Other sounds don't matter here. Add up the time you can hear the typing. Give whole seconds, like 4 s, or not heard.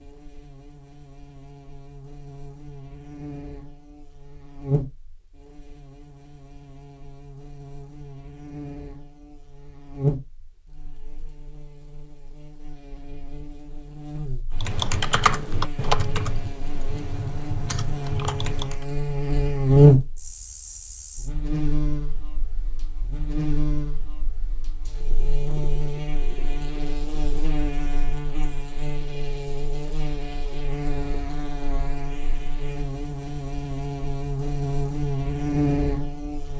4 s.